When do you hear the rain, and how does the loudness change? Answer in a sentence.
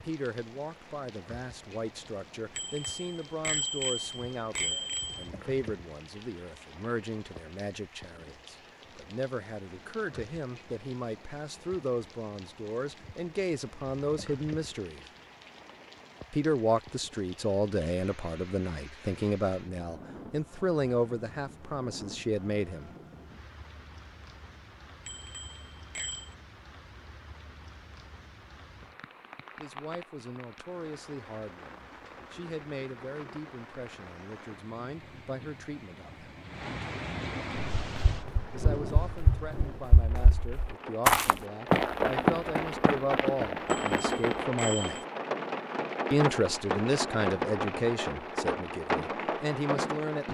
The rain can be heard from 0.0 to 50.2 s, getting louder.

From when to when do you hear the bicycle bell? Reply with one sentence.
The bicycle bell can be heard from 2.5 to 5.2 s, from 25.1 to 26.4 s and from 43.6 to 45.0 s.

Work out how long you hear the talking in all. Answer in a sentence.
You can hear the talking for 39 seconds altogether.